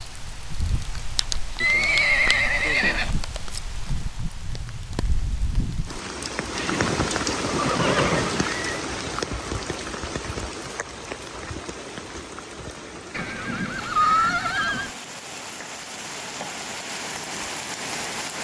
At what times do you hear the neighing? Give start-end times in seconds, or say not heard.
1.6-3.6, 6.5-8.8, 13.1-14.9.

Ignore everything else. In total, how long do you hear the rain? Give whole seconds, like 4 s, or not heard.
18 s.